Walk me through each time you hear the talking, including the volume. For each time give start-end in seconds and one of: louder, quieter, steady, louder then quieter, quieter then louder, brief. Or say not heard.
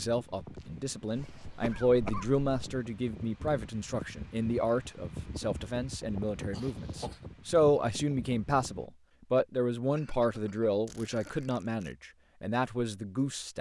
0.0-13.5 steady.